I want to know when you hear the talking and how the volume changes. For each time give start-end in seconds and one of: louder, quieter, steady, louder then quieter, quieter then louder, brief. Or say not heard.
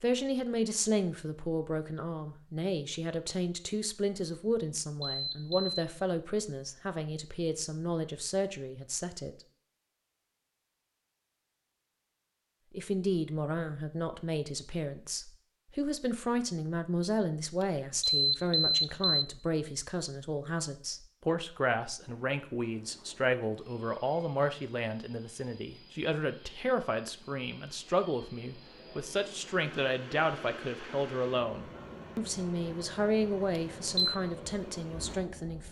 0.0-9.3 steady
12.7-35.6 steady.